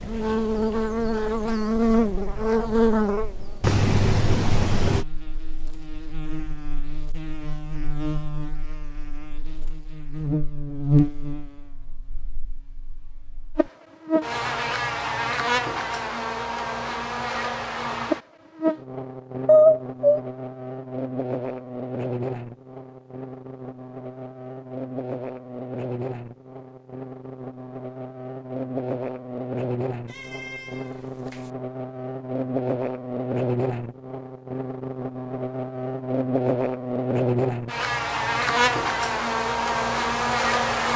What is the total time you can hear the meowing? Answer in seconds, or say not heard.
4 s.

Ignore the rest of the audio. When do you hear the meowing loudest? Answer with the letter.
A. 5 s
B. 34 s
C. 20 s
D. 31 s
C.